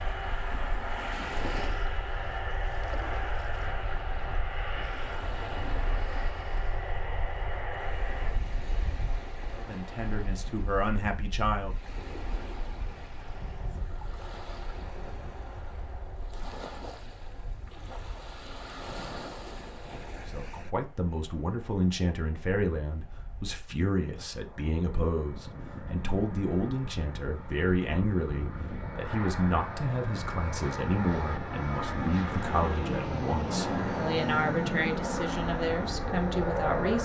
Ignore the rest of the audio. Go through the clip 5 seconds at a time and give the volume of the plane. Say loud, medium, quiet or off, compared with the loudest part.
medium, medium, quiet, quiet, quiet, medium, loud, loud.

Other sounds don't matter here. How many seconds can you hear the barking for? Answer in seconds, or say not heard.
not heard.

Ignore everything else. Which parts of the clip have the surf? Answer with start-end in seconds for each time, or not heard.
0.0-20.8.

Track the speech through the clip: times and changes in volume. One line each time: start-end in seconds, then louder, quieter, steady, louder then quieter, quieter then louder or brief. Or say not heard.
9.6-11.8 brief
20.2-36.9 steady.